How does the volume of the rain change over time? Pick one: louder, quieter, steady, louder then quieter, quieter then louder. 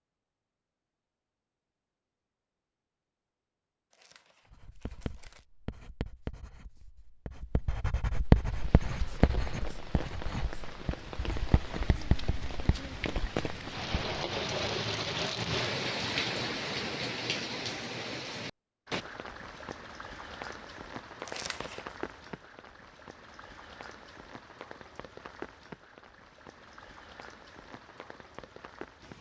louder then quieter.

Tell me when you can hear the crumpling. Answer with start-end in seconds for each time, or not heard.
3.9-5.5, 21.2-21.9.